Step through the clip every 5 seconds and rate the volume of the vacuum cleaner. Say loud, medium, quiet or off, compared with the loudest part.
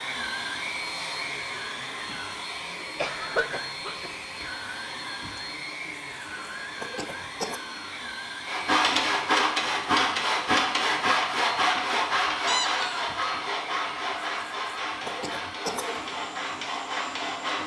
loud, loud, medium, medium.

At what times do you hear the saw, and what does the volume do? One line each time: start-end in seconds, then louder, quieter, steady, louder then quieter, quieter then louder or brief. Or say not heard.
8.4-17.6 quieter.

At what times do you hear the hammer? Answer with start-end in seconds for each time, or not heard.
not heard.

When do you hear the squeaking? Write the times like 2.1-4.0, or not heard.
12.4-13.1.